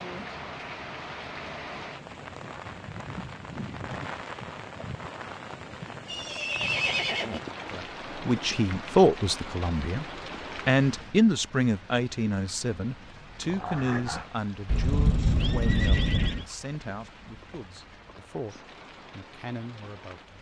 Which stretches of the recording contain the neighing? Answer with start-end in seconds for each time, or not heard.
6.0-7.4, 14.7-16.4.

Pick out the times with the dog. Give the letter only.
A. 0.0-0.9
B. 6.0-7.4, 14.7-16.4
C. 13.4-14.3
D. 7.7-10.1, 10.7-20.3
C.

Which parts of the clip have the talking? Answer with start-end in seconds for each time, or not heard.
7.7-10.1, 10.7-20.3.